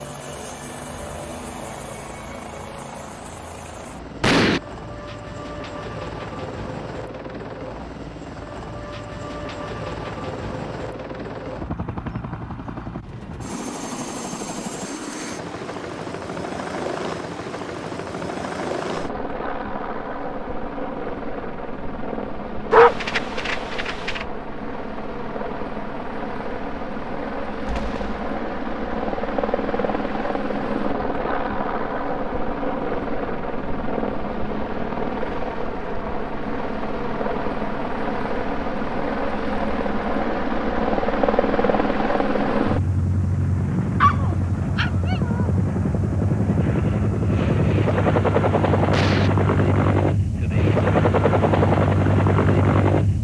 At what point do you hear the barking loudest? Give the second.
23 s.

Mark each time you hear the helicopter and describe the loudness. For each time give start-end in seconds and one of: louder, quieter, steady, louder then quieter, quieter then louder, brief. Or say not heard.
0.0-53.1 louder.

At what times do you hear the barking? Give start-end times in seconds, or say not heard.
22.7-24.2, 44.0-45.5.